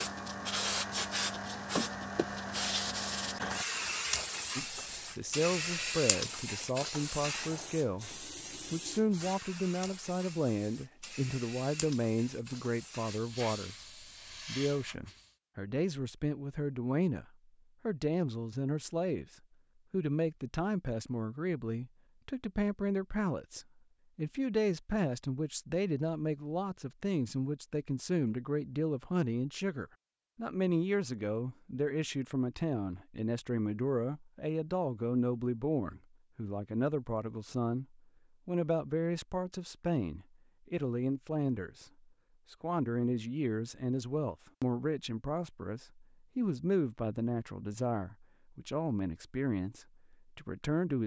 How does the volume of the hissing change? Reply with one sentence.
The volume of the hissing goes down.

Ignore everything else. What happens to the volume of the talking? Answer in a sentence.
The loudness of the talking stays about the same.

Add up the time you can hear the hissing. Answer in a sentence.
The hissing can be heard for 15 seconds in total.